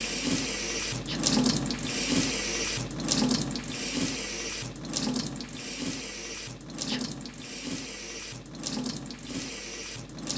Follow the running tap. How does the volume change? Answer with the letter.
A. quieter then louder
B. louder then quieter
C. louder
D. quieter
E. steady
D.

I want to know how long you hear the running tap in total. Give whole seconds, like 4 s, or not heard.
10 s.